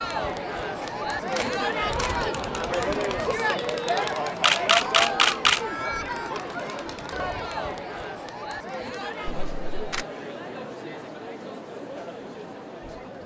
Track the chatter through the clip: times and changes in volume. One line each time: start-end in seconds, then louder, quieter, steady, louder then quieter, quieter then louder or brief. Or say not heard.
0.0-13.2 quieter.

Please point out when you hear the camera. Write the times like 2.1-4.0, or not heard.
0.8-2.1, 4.4-5.6, 9.2-10.1.